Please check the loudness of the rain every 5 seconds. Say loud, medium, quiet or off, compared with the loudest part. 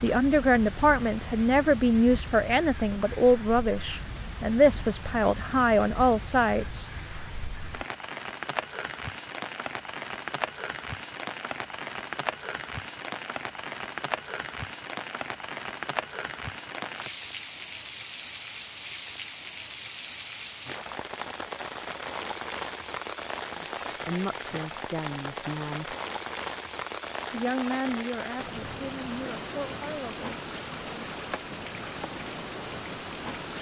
medium, loud, loud, loud, loud, loud, loud.